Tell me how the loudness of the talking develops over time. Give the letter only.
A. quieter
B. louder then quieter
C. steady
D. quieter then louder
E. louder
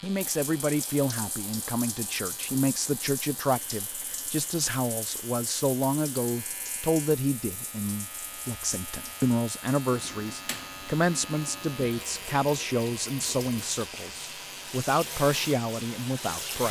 C.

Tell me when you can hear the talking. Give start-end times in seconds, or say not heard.
0.0-16.6.